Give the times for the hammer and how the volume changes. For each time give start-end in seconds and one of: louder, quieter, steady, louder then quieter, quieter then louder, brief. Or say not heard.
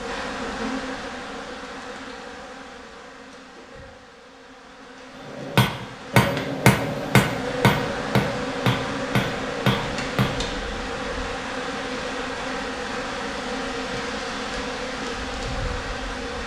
5.2-10.5 quieter.